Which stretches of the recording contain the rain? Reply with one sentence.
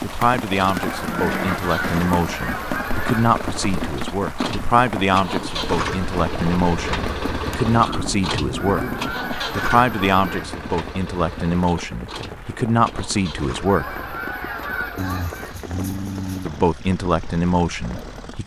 The rain can be heard from 0.0 to 18.4 s.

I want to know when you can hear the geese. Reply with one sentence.
You can hear the geese from 0.7 to 3.3 s, from 8.6 to 10.4 s and from 13.7 to 15.6 s.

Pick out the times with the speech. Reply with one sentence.
The speech can be heard from 0.0 to 8.8 s, from 9.6 to 13.9 s and from 16.4 to 18.4 s.